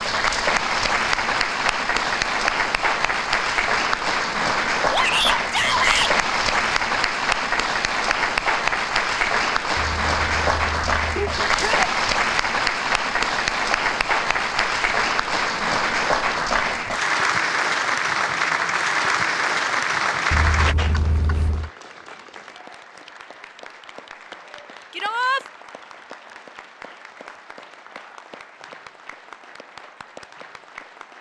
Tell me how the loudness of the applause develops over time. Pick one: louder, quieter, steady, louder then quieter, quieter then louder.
quieter.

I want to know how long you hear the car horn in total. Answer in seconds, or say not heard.
3 s.